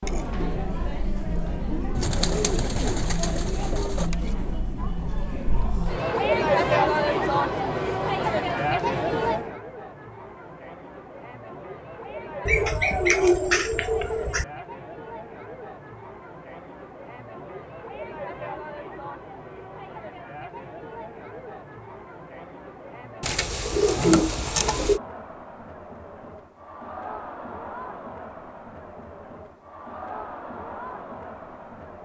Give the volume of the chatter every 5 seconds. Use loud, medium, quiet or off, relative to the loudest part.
medium, loud, quiet, quiet, quiet, quiet, quiet.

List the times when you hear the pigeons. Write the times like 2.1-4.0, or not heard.
1.9-4.1, 12.4-14.4, 23.2-25.0.